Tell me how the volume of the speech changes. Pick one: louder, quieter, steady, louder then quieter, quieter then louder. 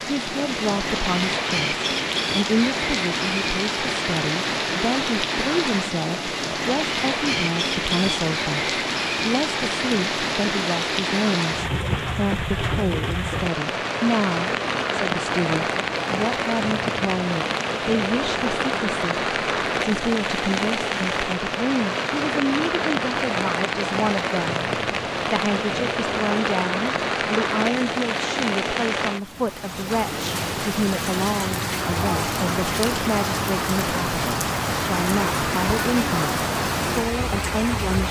steady.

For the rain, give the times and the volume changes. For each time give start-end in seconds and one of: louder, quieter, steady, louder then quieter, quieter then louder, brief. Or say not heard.
0.0-38.0 steady.